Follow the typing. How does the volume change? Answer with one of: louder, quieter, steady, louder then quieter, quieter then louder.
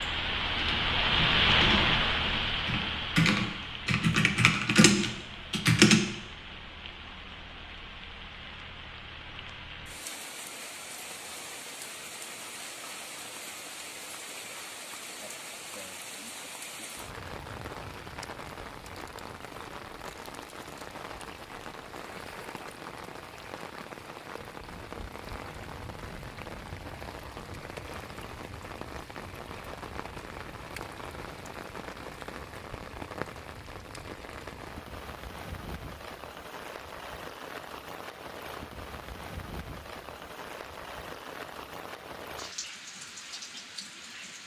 louder.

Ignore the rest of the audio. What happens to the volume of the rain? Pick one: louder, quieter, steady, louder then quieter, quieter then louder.
quieter.